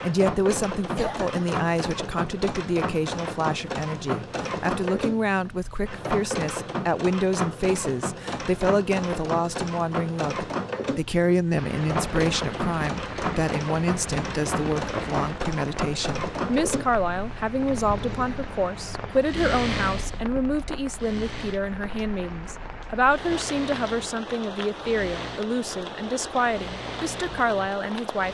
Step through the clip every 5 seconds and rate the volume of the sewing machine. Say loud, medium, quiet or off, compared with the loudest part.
loud, loud, loud, loud, medium, medium.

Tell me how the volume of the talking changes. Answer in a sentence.
The loudness of the talking stays about the same.